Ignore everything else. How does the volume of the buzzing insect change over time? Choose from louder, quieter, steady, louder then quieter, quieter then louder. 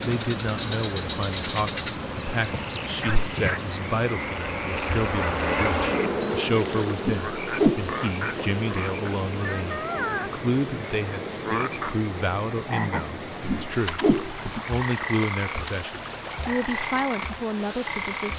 louder then quieter.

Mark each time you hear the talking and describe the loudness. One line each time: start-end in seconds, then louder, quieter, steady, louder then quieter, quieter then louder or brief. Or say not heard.
0.0-18.3 steady.